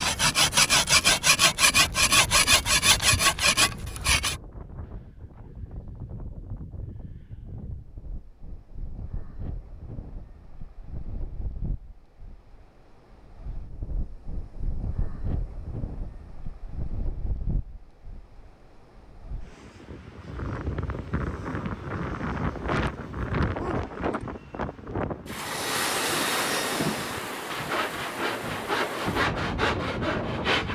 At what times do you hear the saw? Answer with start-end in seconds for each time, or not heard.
0.0-4.4, 25.4-30.7.